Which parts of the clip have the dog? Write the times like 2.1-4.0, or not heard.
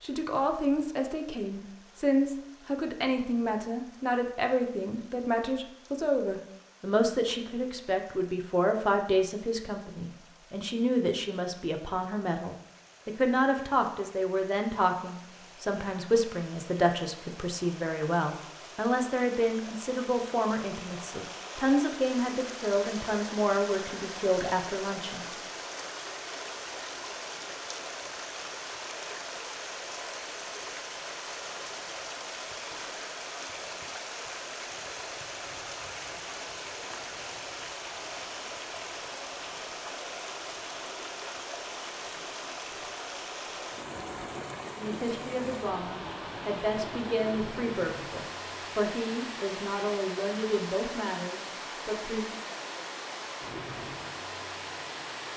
not heard.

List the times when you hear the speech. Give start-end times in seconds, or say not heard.
0.0-25.4, 44.8-52.4.